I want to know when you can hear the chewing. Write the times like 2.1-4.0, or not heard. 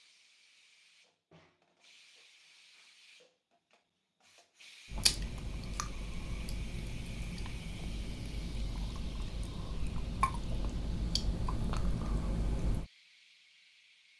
4.8-12.8.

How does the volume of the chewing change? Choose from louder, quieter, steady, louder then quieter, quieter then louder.
louder.